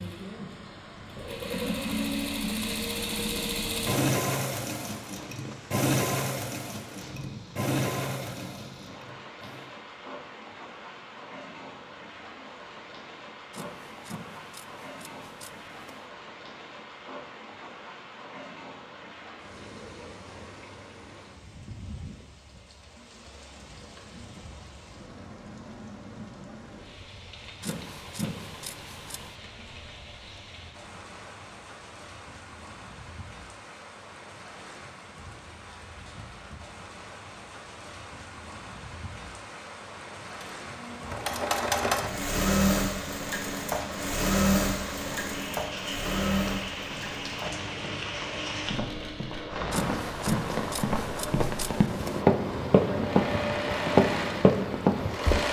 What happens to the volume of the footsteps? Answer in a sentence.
The volume of the footsteps goes up.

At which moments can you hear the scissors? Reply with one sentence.
You can hear the scissors from 13.5 to 16.1 s, from 27.6 to 29.4 s and from 49.7 to 52.2 s.